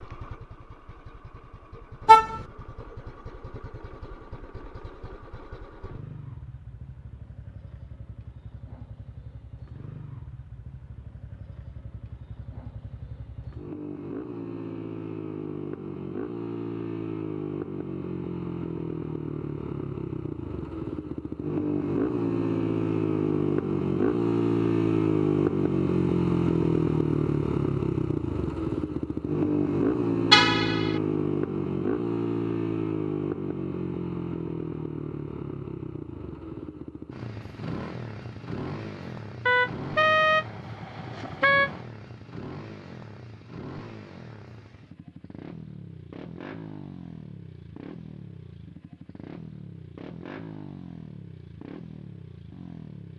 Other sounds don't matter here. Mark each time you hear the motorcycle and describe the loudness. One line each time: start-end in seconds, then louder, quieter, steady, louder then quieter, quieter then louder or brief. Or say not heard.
0.0-53.1 louder then quieter.